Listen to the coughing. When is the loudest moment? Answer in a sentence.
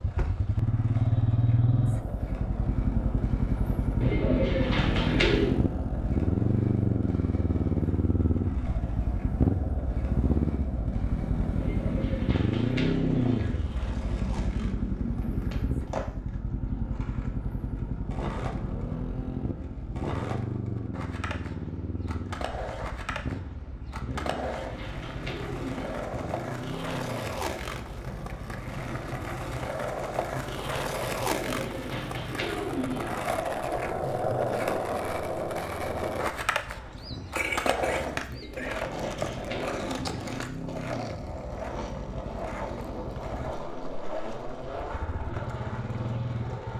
The volume of the coughing peaks at 38 seconds.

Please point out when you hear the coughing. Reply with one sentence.
The coughing can be heard from 36.9 to 38.8 s.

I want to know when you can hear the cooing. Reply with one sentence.
The cooing can be heard from 4.0 to 5.6 s, from 11.6 to 13.6 s, from 24.1 to 26.1 s, from 31.1 to 33.2 s and from 38.3 to 40.3 s.